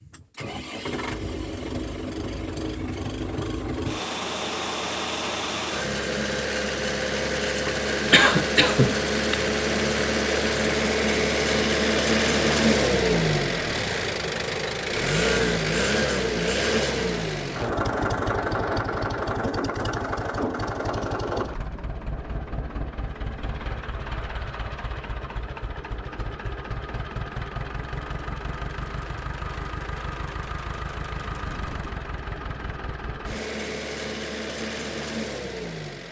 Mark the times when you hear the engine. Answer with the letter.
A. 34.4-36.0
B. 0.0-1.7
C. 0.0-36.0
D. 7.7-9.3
C.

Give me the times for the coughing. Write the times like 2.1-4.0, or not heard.
7.7-9.3.